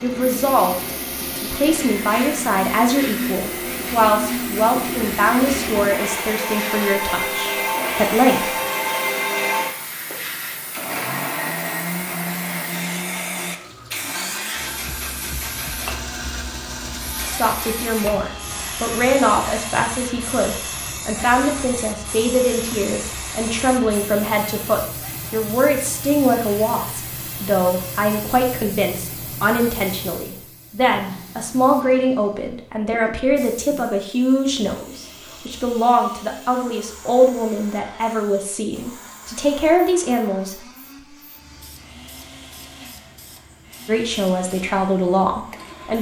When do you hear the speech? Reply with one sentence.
The speech can be heard from 0.0 to 8.5 s, from 17.2 to 40.6 s and from 43.9 to 45.9 s.